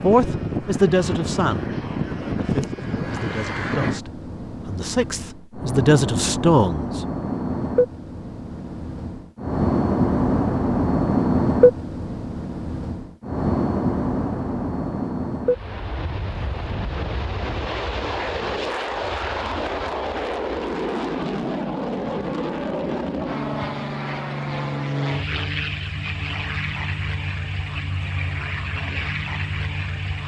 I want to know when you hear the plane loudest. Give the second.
11 s.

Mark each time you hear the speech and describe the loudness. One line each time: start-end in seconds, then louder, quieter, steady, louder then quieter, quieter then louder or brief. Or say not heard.
0.0-7.0 quieter then louder.